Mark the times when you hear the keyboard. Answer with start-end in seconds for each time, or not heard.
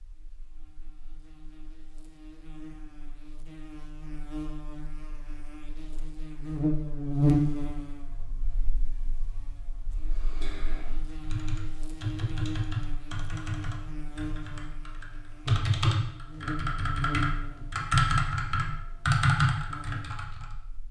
9.8-20.4.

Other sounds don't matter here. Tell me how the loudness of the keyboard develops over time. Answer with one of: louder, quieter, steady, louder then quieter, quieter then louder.
louder.